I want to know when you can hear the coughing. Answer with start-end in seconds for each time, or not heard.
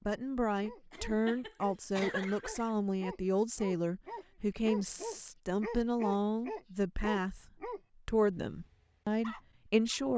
0.9-2.8.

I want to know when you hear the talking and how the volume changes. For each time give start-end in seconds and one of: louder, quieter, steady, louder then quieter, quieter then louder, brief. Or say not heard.
0.1-10.1 steady.